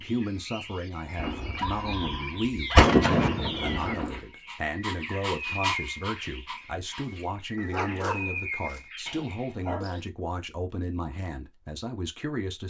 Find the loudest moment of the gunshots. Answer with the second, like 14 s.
3 s.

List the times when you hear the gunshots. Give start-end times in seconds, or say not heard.
1.1-4.2.